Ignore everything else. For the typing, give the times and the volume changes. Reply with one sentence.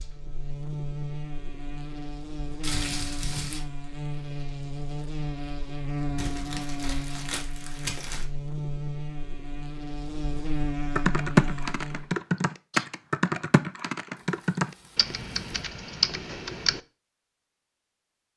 You can hear the typing from 10.9 to 16.8 s, getting quieter.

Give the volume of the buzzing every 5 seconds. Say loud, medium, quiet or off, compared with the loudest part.
loud, loud, loud, off.